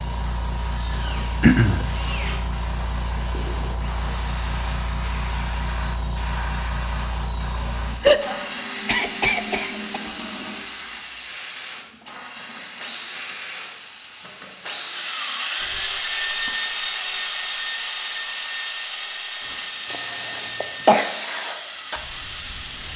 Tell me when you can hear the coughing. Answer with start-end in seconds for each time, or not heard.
1.4-1.9, 8.0-10.0, 19.9-21.1.